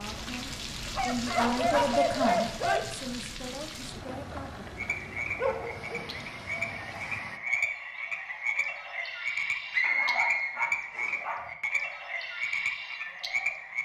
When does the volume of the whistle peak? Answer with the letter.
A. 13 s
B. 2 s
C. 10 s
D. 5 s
C.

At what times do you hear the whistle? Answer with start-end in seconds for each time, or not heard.
9.7-11.2.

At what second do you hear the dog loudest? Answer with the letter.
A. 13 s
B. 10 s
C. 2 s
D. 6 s
C.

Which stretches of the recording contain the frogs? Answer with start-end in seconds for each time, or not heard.
4.8-13.8.